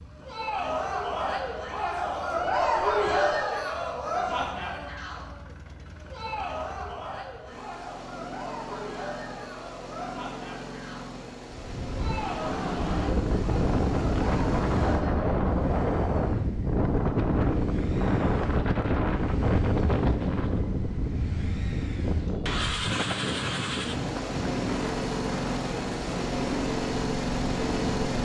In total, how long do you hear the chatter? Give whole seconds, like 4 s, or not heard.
15 s.